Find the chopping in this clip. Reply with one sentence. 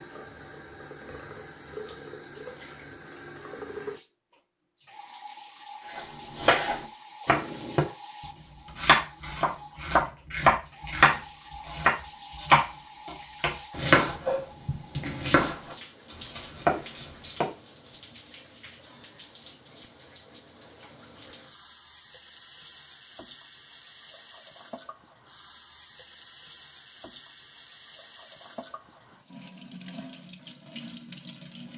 The chopping can be heard from 6.0 to 7.8 s and from 8.8 to 17.5 s.